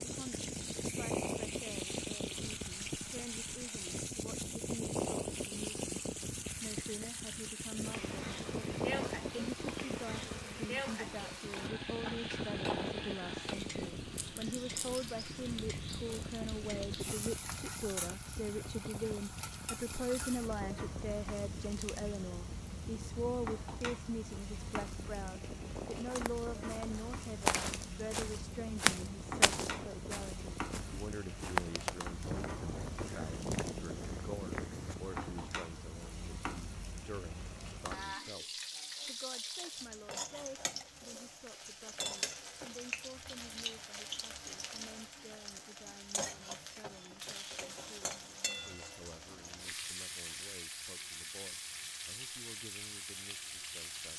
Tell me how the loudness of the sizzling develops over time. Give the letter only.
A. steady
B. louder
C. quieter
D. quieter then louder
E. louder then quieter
A.